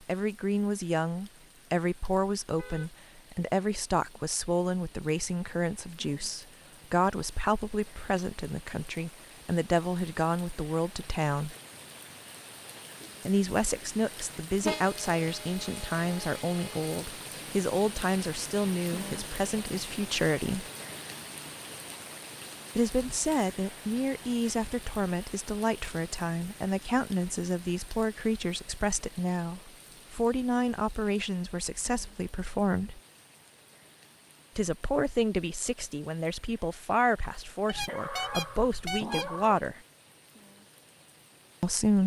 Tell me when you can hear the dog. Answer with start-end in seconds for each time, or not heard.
37.8-39.6.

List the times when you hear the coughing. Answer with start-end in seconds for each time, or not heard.
not heard.